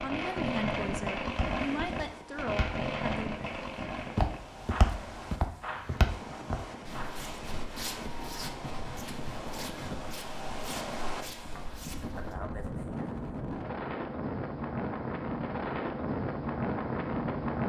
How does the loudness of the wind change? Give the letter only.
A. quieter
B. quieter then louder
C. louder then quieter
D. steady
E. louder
E.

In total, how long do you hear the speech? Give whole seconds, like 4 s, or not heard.
3 s.